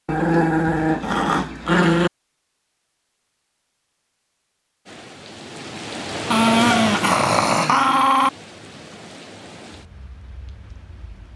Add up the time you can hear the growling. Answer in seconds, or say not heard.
4 s.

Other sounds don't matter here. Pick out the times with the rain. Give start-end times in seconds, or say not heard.
4.8-11.3.